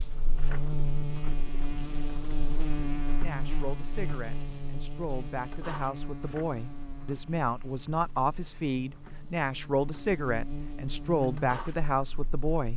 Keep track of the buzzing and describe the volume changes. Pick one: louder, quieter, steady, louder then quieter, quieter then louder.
quieter then louder.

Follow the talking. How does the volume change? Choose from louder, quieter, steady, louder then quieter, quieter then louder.
louder.